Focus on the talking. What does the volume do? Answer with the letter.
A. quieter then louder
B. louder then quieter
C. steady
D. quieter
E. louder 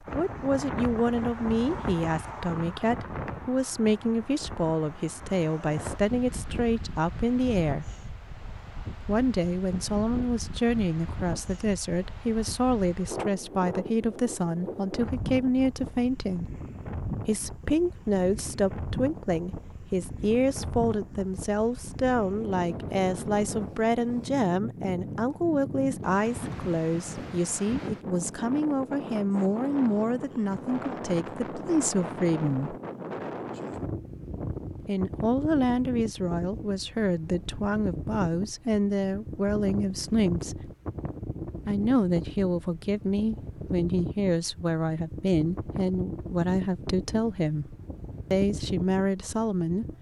C.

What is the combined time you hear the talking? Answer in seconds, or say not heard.
45 s.